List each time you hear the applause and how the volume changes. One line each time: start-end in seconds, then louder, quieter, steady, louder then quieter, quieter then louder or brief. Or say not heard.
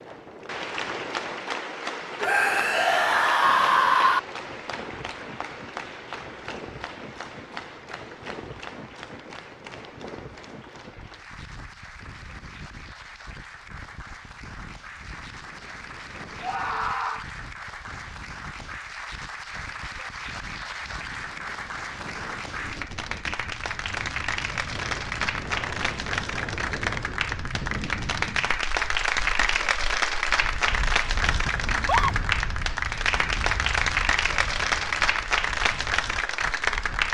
0.0-37.0 quieter then louder.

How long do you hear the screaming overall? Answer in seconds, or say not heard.
3 s.